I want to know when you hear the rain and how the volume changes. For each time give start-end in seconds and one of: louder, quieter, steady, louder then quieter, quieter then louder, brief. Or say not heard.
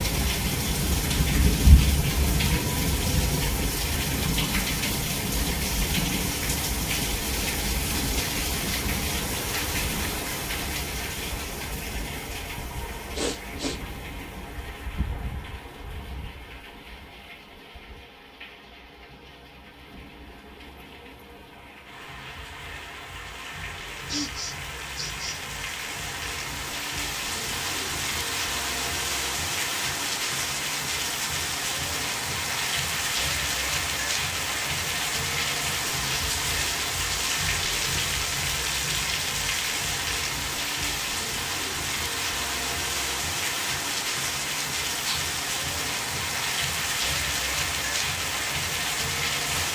0.0-49.7 quieter then louder.